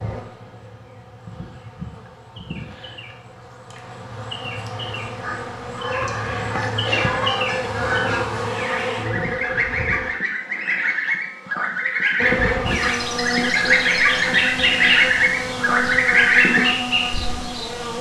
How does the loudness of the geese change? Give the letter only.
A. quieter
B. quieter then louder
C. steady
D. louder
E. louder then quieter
D.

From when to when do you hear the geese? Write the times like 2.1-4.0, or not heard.
5.2-16.7.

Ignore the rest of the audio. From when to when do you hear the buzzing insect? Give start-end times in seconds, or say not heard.
0.0-10.2, 12.2-17.9.